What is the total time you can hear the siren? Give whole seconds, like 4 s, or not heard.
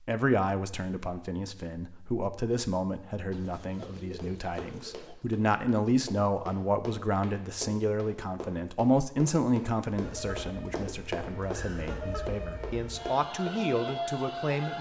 5 s.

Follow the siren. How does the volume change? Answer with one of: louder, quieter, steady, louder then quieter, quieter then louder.
louder.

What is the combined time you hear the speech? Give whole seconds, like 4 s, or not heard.
15 s.